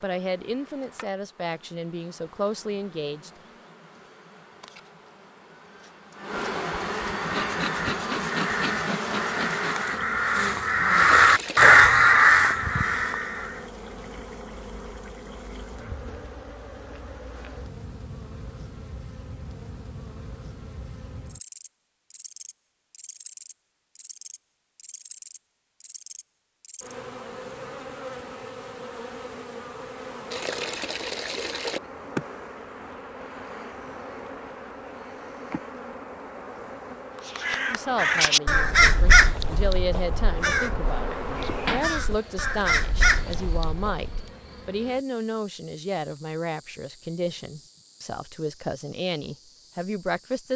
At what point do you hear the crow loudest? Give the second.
12 s.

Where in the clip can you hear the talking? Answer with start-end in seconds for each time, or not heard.
0.0-3.3, 37.6-50.5.